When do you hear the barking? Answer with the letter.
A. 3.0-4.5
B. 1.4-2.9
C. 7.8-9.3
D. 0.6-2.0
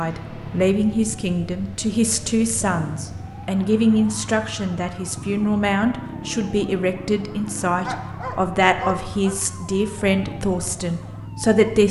C.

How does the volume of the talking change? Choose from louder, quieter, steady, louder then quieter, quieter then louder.
steady.